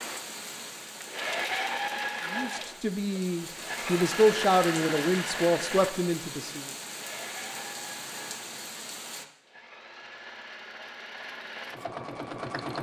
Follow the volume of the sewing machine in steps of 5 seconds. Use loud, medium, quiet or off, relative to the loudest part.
loud, medium, medium.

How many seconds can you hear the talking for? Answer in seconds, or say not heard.
4 s.